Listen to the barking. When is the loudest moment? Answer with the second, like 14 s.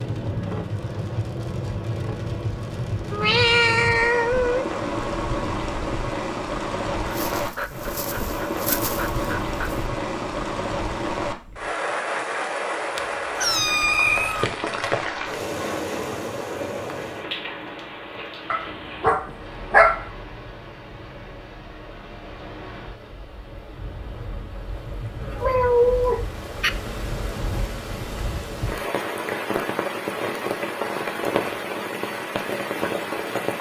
20 s.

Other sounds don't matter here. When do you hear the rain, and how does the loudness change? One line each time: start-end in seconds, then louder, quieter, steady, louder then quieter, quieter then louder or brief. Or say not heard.
0.0-33.5 quieter then louder.